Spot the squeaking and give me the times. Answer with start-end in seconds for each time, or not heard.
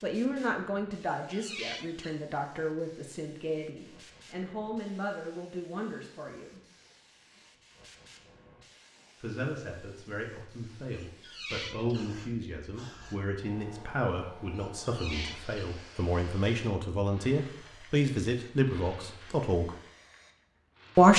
1.0-2.2, 10.9-12.1, 14.6-15.8.